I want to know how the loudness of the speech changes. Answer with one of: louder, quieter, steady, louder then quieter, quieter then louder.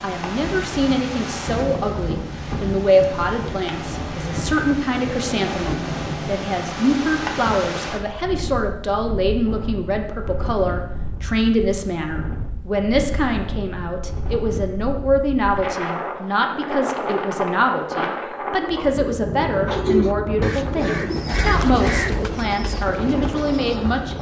steady.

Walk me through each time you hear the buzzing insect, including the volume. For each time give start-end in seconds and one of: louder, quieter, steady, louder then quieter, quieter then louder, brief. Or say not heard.
not heard.